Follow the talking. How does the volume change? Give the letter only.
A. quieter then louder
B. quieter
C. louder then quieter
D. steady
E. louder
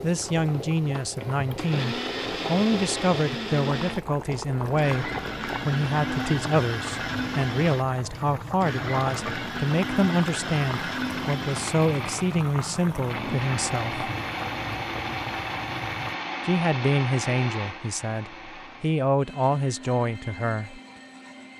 D.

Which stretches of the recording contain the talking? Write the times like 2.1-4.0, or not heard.
0.0-14.1, 16.4-20.8.